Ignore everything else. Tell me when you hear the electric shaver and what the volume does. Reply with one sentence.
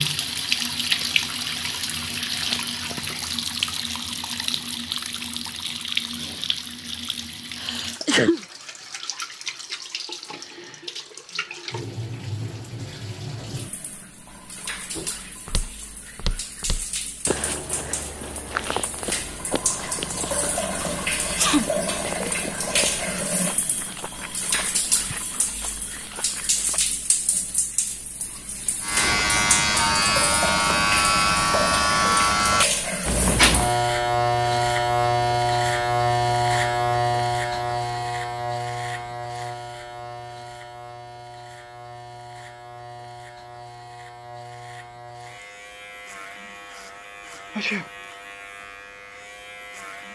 The electric shaver can be heard from 28.8 to 50.1 s, getting quieter.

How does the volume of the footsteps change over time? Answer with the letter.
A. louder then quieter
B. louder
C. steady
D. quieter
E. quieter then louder
D.